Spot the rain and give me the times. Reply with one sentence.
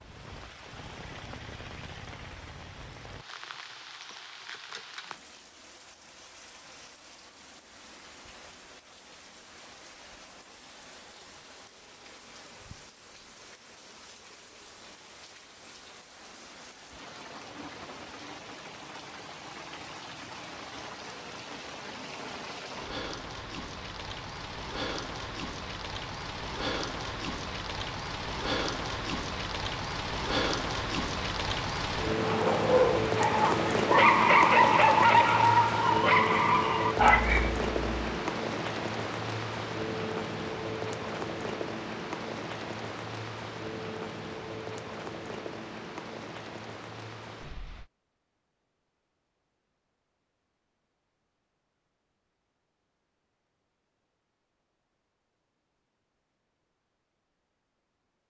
The rain can be heard from 0.0 to 47.9 s.